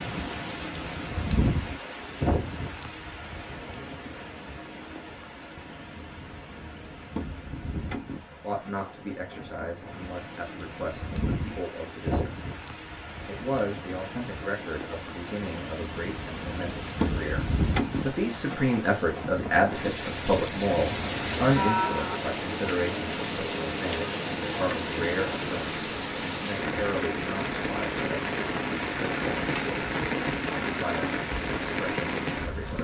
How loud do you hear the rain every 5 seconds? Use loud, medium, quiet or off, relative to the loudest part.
loud, medium, medium, loud, loud, loud, loud.